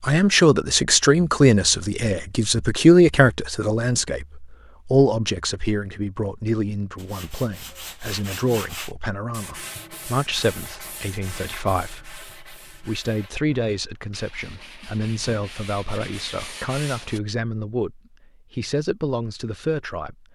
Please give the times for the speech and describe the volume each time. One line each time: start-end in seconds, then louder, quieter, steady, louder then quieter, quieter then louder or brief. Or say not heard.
0.0-20.3 quieter.